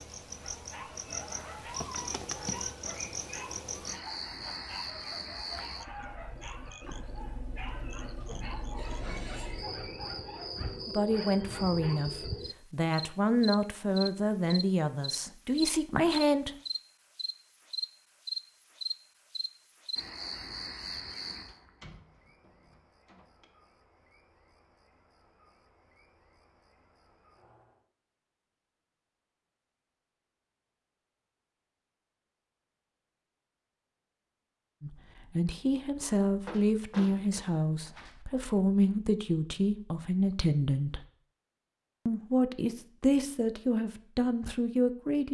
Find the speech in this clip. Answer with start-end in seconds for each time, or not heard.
10.9-16.6, 34.8-41.0, 42.0-45.2.